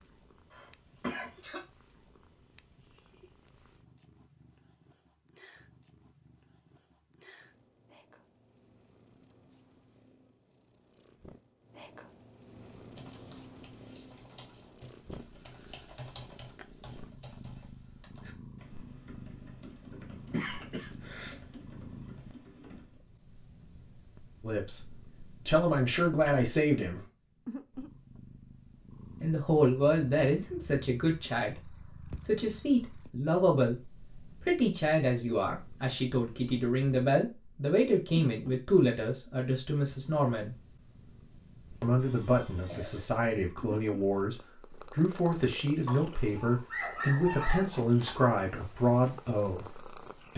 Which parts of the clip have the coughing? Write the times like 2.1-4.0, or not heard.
0.5-1.6, 20.3-21.4, 42.0-43.2.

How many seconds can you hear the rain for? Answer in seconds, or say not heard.
not heard.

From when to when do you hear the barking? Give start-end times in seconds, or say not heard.
45.9-47.8.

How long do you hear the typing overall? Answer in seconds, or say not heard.
10 s.